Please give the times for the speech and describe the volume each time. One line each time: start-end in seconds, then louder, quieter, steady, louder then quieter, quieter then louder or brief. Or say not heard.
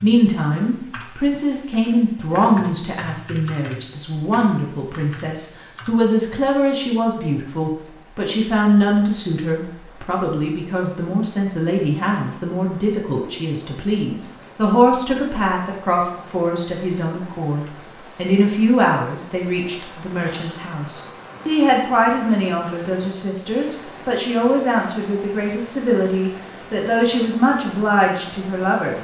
0.0-28.9 steady.